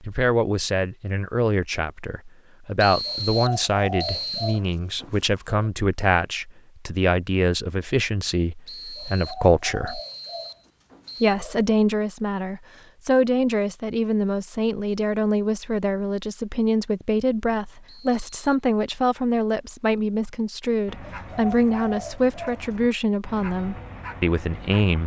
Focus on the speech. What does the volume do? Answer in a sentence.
The volume of the speech stays about the same.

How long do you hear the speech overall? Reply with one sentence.
You can hear the speech for 24 seconds altogether.